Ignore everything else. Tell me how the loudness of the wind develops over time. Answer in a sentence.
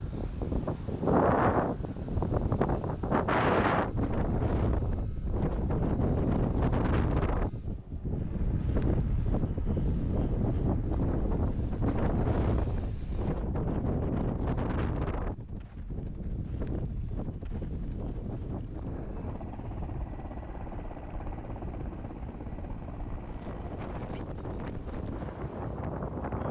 The loudness of the wind goes down.